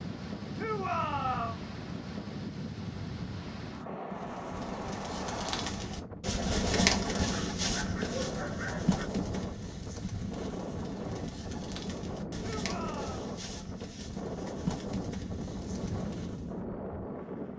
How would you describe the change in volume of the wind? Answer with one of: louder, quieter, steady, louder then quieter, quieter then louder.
steady.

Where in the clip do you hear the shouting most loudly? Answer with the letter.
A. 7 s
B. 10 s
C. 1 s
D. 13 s
C.